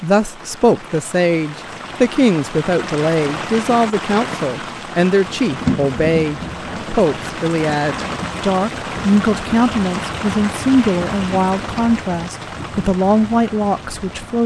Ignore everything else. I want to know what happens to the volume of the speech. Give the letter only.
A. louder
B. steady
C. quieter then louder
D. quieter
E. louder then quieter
B.